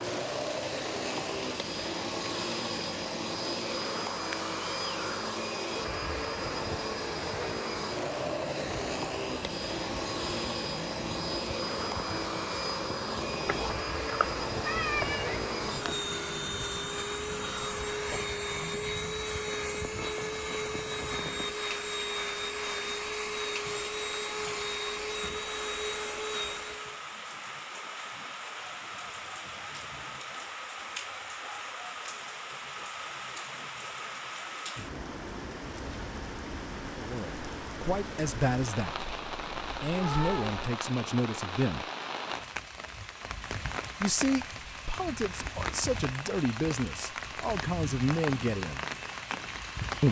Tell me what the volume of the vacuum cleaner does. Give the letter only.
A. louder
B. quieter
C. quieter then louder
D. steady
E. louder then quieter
D.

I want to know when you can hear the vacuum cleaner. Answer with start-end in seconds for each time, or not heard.
0.0-27.0.